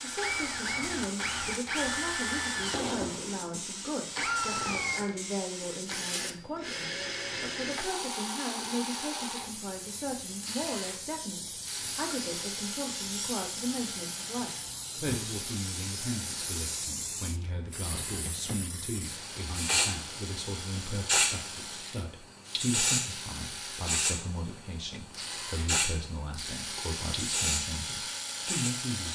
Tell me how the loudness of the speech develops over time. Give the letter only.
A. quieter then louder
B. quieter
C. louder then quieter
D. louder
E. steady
E.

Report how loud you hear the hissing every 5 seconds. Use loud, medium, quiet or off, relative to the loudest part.
medium, medium, medium, loud, loud, loud.